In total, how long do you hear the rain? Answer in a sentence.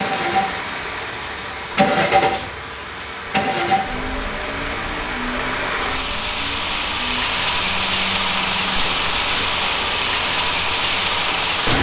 The rain can be heard for 12 seconds in total.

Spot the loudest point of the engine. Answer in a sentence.
The loudest moment of the engine is at 2 seconds.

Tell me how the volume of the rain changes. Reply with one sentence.
The volume of the rain goes up.